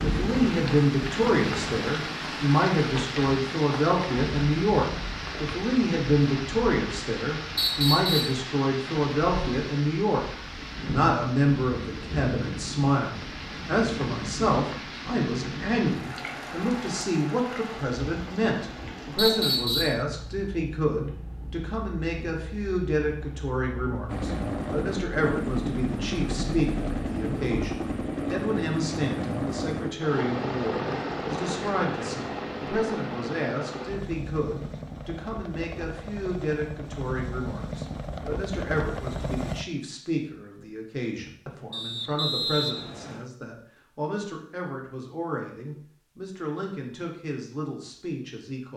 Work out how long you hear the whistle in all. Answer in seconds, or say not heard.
3 s.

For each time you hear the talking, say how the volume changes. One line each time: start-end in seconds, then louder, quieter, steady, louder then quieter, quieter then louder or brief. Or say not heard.
0.0-10.2 steady
10.9-48.7 quieter.